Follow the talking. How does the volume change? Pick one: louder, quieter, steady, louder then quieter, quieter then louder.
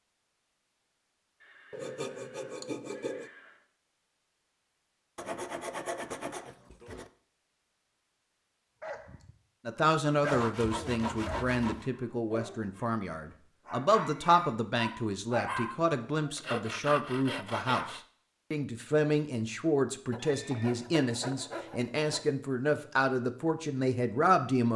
steady.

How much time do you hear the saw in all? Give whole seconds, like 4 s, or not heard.
9 s.